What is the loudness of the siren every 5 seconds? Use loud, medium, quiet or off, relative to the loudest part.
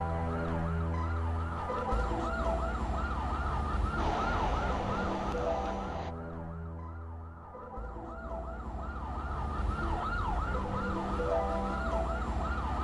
loud, medium, loud.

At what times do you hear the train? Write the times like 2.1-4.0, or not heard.
4.0-6.2.